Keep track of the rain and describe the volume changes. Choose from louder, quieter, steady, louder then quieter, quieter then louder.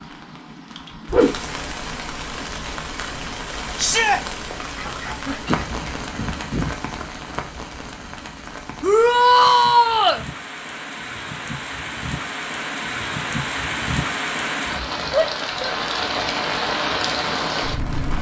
quieter then louder.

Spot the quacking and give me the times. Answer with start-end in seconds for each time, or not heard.
4.8-6.8.